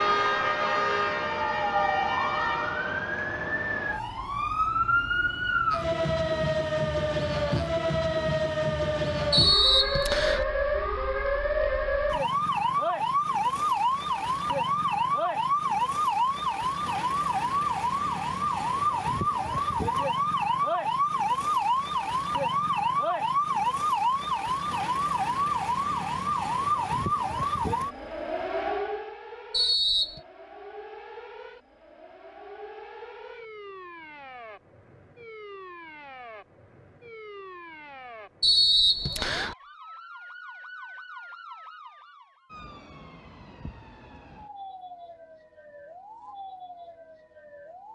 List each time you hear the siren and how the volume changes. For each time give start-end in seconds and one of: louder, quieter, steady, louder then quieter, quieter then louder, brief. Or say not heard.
0.0-47.9 quieter.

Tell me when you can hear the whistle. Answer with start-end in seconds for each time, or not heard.
9.3-10.4, 29.5-30.2, 38.4-39.5.